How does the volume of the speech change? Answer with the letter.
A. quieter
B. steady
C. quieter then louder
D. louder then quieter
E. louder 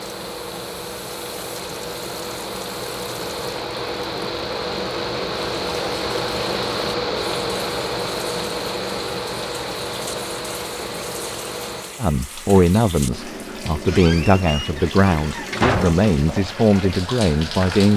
B.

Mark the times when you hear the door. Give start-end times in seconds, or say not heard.
13.8-16.1.